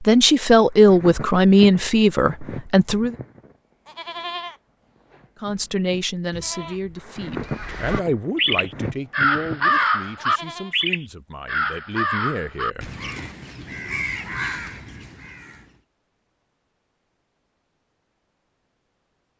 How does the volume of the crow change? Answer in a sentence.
The loudness of the crow goes down.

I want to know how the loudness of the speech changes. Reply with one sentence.
The loudness of the speech goes down.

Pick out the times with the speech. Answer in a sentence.
The speech can be heard from 0.0 to 3.1 s and from 5.4 to 12.9 s.